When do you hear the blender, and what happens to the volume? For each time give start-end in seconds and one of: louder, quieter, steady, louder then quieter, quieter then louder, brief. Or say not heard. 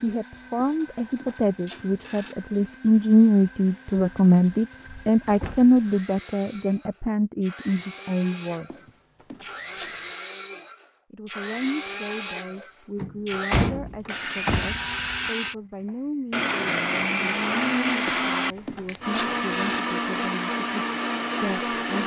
0.0-22.0 louder.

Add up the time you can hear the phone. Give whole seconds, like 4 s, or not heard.
5 s.